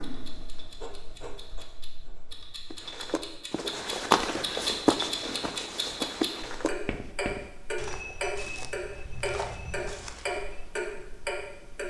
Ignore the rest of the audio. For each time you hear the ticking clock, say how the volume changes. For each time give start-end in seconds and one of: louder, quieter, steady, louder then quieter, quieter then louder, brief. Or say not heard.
0.0-11.8 louder.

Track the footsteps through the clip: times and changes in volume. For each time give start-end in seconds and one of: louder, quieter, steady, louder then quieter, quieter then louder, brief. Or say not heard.
2.7-10.8 quieter.